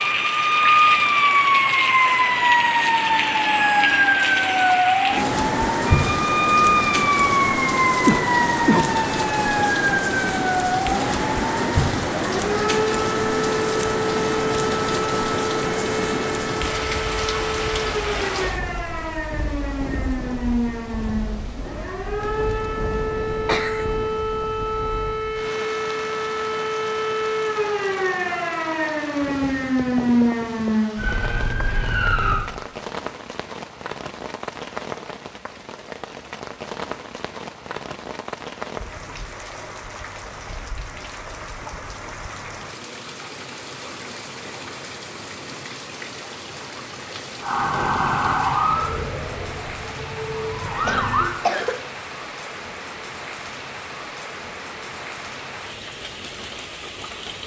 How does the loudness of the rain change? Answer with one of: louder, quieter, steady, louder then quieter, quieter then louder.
quieter.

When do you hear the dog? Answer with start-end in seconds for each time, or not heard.
not heard.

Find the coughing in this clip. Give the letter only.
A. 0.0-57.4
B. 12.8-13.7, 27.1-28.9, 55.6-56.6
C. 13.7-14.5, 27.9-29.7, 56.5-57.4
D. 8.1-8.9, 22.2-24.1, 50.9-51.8
D.